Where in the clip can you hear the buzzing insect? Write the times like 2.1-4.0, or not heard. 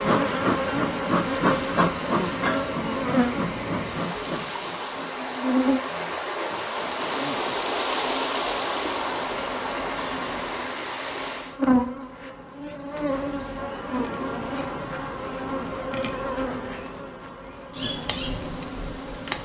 0.0-19.3.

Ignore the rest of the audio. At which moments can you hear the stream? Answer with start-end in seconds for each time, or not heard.
0.1-11.6.